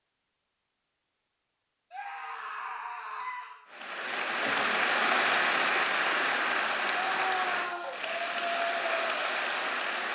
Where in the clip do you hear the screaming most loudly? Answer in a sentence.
The volume of the screaming peaks at 7 seconds.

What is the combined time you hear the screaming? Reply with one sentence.
You can hear the screaming for 3 seconds altogether.